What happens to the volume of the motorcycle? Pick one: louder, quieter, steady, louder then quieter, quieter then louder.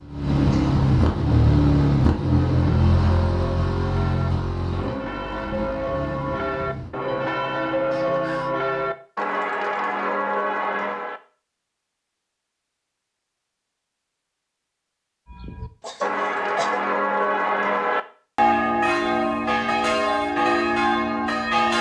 quieter.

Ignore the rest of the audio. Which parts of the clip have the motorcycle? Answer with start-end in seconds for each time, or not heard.
0.0-7.0.